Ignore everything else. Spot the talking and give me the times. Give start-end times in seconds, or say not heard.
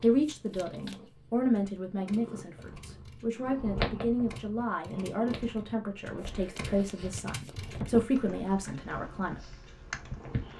0.0-9.5.